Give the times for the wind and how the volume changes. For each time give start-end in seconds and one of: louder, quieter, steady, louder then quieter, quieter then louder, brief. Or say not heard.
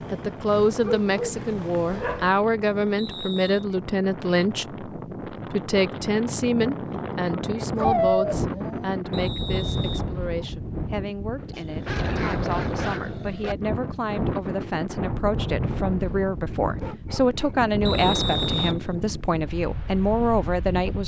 0.0-21.0 louder.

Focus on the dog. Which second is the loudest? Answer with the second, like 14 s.
8 s.